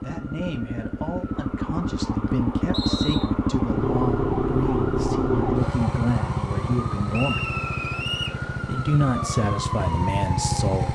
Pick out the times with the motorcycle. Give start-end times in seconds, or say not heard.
0.0-10.9.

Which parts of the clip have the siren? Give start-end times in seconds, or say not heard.
0.0-10.9.